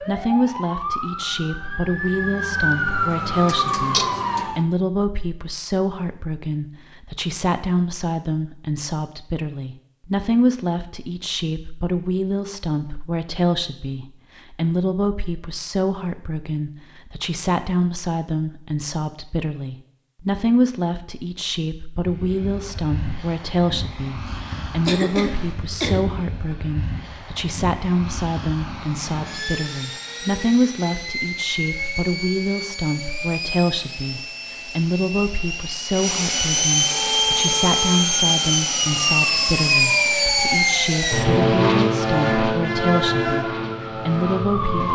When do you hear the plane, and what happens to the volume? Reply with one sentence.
You can hear the plane from 21.9 to 44.9 s, getting louder.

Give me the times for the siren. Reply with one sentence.
You can hear the siren from 0.0 to 4.7 s and from 36.9 to 44.9 s.